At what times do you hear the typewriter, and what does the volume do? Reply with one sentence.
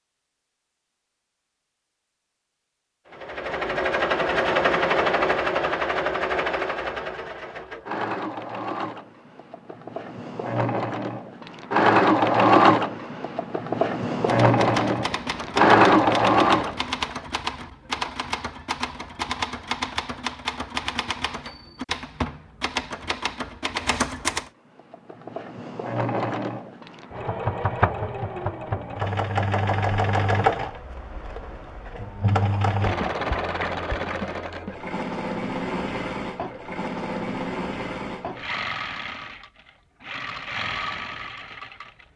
You can hear the typewriter from 14.2 to 24.4 s, at a steady volume.